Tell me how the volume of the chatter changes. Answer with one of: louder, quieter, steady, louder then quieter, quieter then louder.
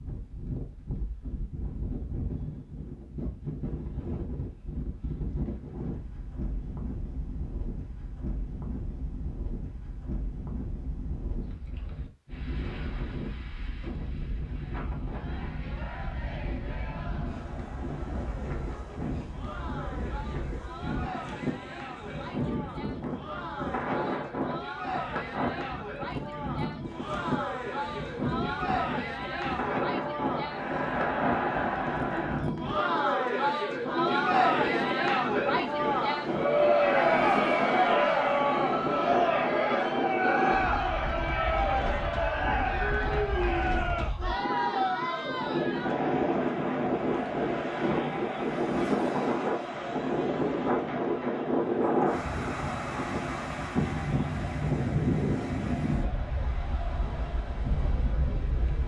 louder then quieter.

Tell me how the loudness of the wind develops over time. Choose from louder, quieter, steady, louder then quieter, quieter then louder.
louder.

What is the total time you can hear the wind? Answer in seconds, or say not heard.
59 s.